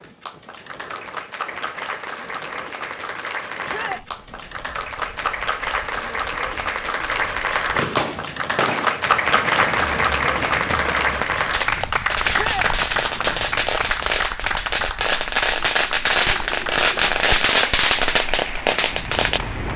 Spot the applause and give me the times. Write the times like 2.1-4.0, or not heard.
0.0-19.7.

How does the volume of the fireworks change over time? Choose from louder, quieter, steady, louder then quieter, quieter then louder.
louder.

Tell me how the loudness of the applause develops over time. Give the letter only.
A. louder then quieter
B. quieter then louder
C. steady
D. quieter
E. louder
A.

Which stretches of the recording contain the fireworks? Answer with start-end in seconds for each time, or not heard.
7.7-19.4.